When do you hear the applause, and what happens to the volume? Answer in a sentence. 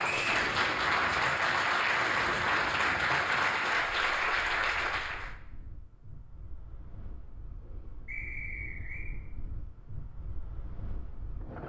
The applause can be heard from 0.0 to 5.3 s, at a steady volume.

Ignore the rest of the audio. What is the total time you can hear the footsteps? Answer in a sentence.
The footsteps can't be heard in this clip.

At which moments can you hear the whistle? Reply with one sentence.
You can hear the whistle from 0.0 to 0.5 s and from 8.1 to 9.1 s.